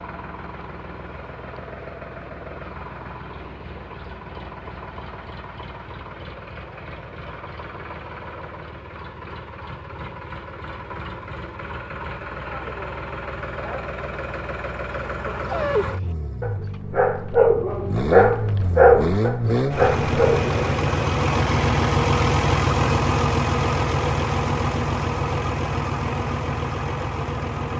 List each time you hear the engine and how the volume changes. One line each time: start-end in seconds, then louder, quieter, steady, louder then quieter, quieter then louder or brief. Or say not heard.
0.0-27.7 louder.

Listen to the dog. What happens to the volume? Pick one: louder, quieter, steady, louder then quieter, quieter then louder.
louder then quieter.